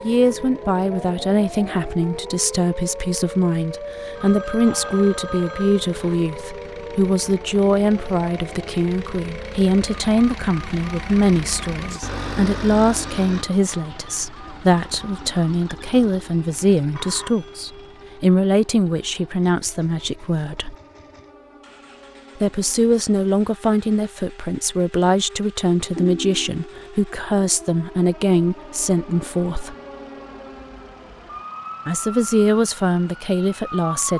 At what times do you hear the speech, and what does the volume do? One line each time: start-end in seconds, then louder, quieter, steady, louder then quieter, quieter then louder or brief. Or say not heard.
0.0-20.8 steady
22.4-29.8 steady
31.9-34.1 brief.